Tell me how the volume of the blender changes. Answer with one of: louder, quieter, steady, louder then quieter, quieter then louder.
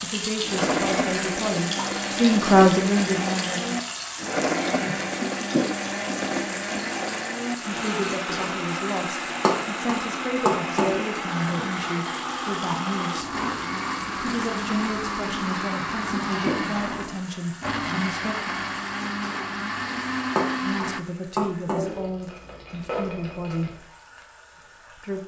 steady.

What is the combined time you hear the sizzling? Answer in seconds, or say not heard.
25 s.